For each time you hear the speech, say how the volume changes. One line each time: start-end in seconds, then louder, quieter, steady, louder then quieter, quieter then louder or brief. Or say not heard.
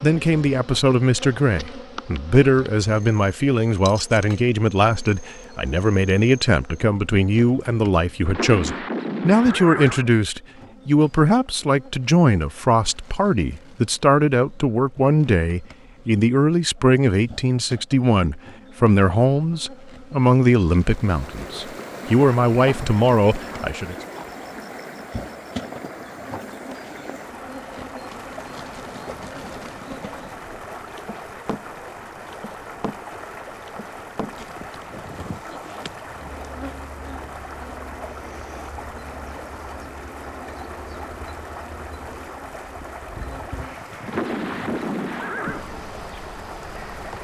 0.0-23.9 steady.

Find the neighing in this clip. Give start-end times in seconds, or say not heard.
8.2-10.1, 44.0-45.6.